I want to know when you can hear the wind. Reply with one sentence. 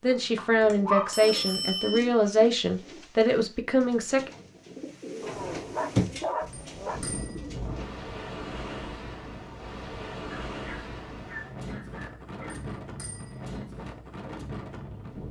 The wind can be heard from 6.4 to 15.2 s.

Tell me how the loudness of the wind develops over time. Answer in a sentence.
The volume of the wind stays about the same.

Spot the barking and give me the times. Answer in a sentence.
The barking can be heard from 0.1 to 2.0 s, from 5.2 to 7.0 s and from 10.3 to 12.7 s.